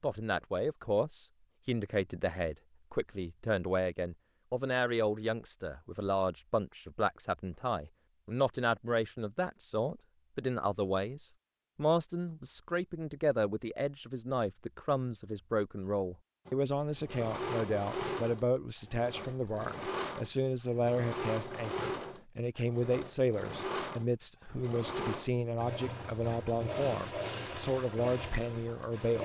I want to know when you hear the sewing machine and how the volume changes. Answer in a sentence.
You can hear the sewing machine from 16.4 to 29.2 s, at a steady volume.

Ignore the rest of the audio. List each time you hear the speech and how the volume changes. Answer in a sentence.
The speech can be heard from 0.0 to 29.2 s, at a steady volume.